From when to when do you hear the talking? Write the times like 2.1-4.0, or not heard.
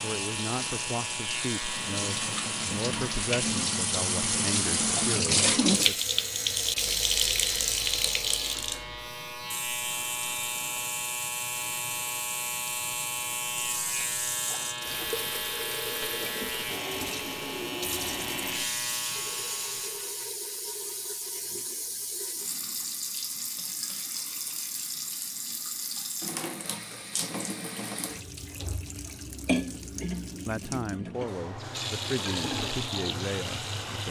0.0-6.0, 29.8-34.0.